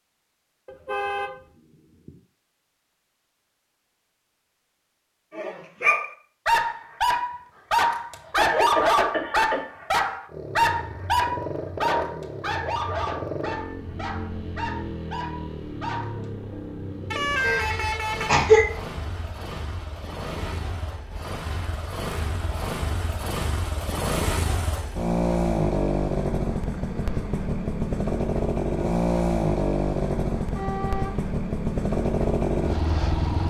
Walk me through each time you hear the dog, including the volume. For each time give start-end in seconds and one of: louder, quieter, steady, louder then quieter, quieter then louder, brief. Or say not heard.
5.3-16.2 quieter.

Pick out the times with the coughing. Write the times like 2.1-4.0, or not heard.
8.3-9.6, 17.4-18.6.